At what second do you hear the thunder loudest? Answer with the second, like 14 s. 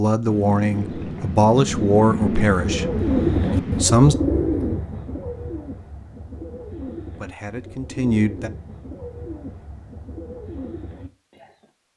2 s.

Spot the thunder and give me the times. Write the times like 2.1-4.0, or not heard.
0.2-3.9.